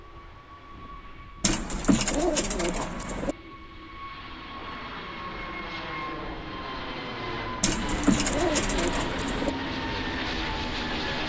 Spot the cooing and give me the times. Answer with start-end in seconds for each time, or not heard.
1.4-3.4, 7.6-9.5.